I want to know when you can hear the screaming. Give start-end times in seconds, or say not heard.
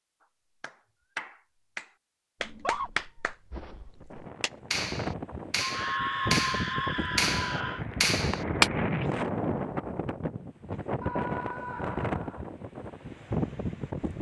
2.4-2.9, 5.6-7.8, 11.0-12.4.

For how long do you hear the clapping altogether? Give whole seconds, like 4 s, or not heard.
8 s.